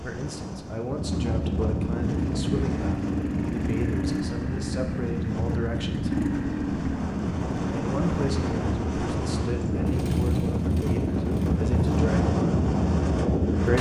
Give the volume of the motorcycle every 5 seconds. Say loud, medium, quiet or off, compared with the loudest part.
loud, loud, medium.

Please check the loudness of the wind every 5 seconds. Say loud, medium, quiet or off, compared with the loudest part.
medium, medium, loud.